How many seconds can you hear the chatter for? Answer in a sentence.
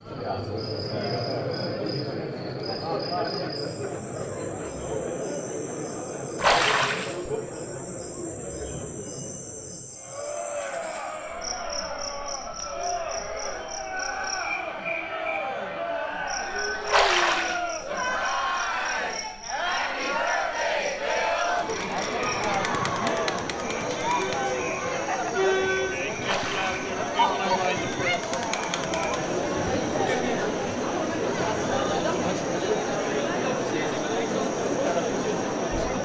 The chatter can be heard for 36 seconds in total.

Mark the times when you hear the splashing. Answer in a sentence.
You can hear the splashing from 6.4 to 7.1 s, from 16.9 to 17.6 s and from 26.2 to 26.9 s.